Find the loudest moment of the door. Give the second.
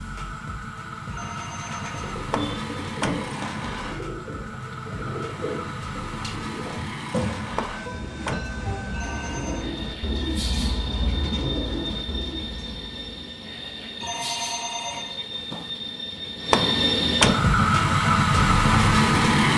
17 s.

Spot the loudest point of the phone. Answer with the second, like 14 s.
14 s.